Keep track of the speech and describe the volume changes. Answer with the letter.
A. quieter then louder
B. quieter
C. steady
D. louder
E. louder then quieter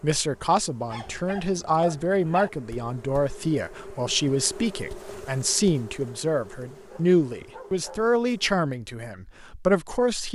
C.